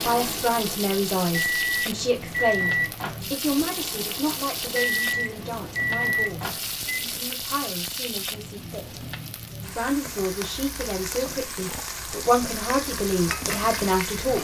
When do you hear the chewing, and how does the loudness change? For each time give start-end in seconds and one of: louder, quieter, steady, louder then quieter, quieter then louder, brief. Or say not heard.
not heard.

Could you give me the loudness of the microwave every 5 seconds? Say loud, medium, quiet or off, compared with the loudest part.
loud, loud, off.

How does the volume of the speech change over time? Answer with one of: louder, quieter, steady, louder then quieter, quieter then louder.
quieter then louder.